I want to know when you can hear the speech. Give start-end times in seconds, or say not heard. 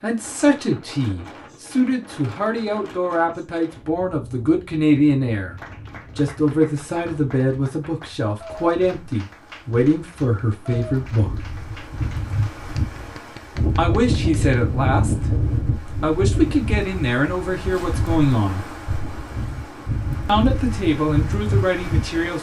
0.0-5.5, 6.2-11.3, 13.8-18.6, 20.2-22.3.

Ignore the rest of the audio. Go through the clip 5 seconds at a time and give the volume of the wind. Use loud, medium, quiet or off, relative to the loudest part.
quiet, quiet, loud, loud, loud.